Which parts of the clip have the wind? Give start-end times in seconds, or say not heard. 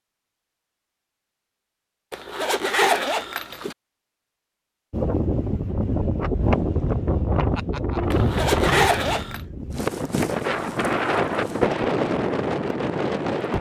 4.9-13.5.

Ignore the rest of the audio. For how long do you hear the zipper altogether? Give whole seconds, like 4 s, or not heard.
3 s.